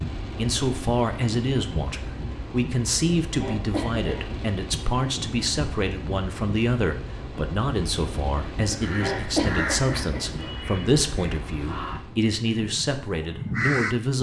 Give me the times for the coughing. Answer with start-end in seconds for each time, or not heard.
3.3-4.2, 8.7-10.5.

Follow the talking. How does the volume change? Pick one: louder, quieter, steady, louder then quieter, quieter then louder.
steady.